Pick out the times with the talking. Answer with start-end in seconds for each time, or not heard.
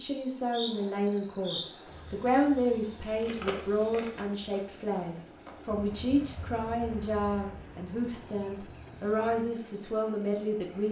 0.0-10.8.